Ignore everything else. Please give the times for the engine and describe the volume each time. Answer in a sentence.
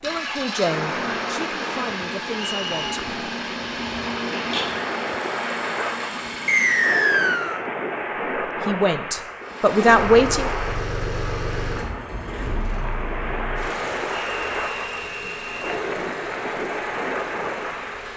You can hear the engine from 0.0 to 7.2 s, at a steady volume; and from 9.4 to 18.1 s, getting quieter.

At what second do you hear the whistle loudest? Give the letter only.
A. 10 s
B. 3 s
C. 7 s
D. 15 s
C.